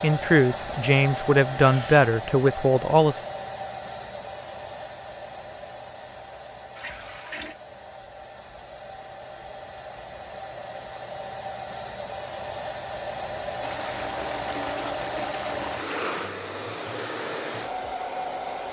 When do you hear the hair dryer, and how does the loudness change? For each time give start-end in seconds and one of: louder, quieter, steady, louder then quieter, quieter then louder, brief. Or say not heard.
0.0-18.6 quieter then louder.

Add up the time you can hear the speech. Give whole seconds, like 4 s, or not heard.
3 s.